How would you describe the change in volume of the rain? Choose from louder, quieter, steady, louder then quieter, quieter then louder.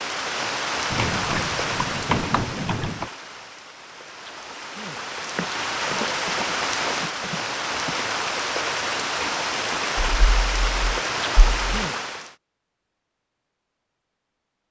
quieter then louder.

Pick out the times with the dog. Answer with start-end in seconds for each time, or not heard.
not heard.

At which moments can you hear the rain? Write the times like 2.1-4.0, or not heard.
0.0-12.3.